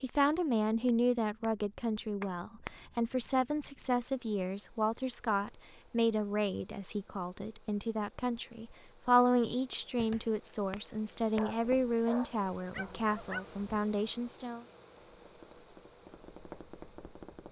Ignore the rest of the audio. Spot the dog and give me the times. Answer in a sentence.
The dog can be heard from 11.3 to 13.8 s.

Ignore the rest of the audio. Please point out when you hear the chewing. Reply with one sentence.
You can't hear the chewing here.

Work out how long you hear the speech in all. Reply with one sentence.
The speech can be heard for 15 seconds in total.